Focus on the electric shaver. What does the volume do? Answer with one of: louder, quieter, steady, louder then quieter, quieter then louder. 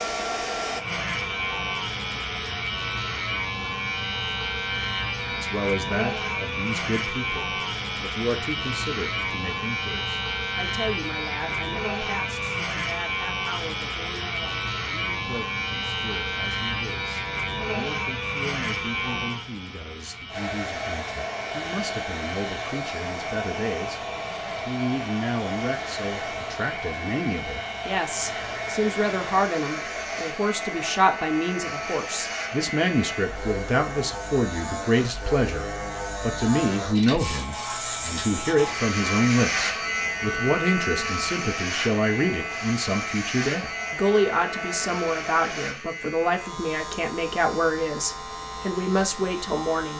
quieter then louder.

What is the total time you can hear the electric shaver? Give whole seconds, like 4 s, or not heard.
50 s.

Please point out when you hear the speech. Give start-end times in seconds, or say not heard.
5.3-49.9.